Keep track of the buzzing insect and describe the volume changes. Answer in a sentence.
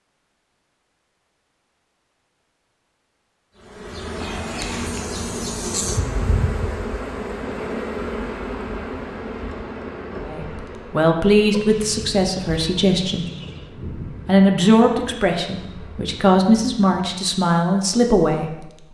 The loudness of the buzzing insect goes down.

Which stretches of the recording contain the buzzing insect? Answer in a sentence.
The buzzing insect can be heard from 3.5 to 17.1 s.